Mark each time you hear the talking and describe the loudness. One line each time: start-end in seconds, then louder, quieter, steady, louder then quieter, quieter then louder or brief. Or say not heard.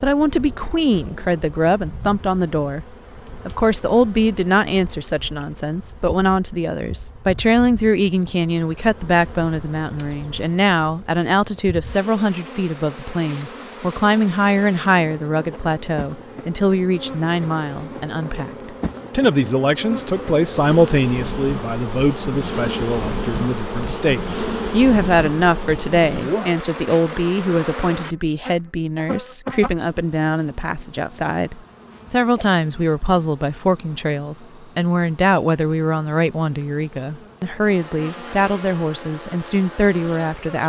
0.0-40.6 steady.